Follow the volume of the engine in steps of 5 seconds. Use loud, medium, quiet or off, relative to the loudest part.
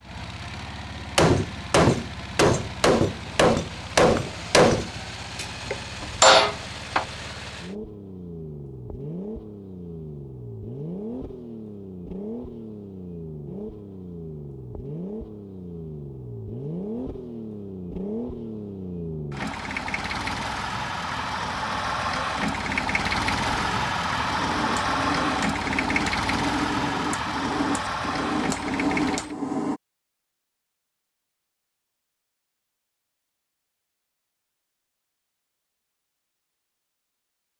medium, medium, medium, medium, loud, loud, off, off.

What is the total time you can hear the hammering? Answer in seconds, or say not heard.
12 s.